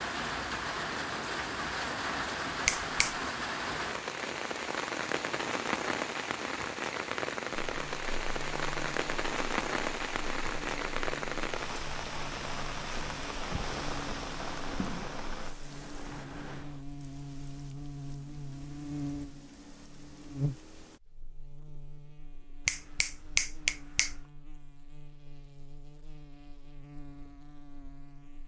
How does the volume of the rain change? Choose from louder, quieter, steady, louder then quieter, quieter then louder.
quieter.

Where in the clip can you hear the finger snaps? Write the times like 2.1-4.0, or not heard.
2.6-3.2, 22.6-24.2.